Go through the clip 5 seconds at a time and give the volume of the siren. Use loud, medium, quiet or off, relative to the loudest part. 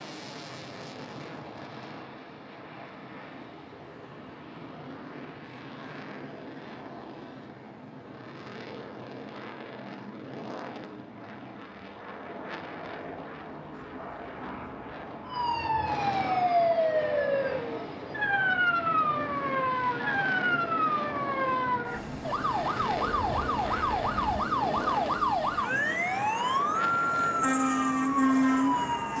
off, off, off, loud, loud, loud.